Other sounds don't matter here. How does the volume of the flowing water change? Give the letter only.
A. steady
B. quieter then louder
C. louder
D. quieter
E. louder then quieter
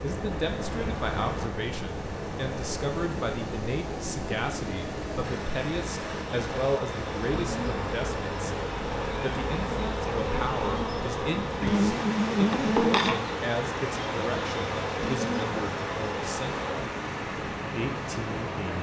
A.